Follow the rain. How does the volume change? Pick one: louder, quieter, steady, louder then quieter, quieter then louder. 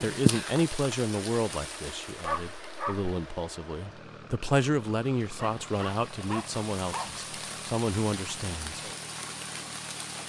quieter then louder.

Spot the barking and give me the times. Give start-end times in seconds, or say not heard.
2.2-3.1, 5.3-7.2.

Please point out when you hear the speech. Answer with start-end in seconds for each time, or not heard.
0.0-8.8.